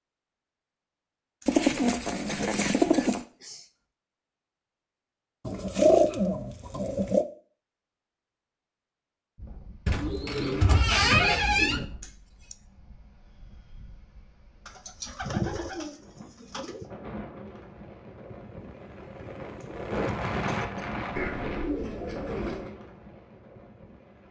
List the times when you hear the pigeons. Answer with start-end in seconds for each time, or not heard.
1.4-3.2, 5.5-7.2, 9.8-11.8, 14.7-16.9, 21.1-22.8.